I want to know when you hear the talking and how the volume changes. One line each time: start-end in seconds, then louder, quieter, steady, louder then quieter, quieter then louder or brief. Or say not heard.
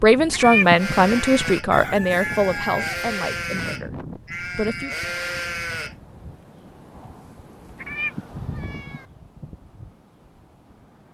0.0-5.0 quieter.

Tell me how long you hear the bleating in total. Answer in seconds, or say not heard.
5 s.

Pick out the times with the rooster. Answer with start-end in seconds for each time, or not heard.
1.7-3.0.